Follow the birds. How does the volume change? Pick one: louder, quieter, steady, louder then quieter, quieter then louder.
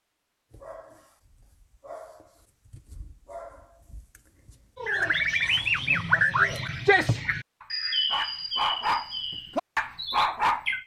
quieter.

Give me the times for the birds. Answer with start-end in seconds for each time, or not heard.
4.8-10.8.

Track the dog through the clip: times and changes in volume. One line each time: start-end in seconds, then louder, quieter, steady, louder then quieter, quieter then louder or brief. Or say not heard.
0.5-10.7 louder.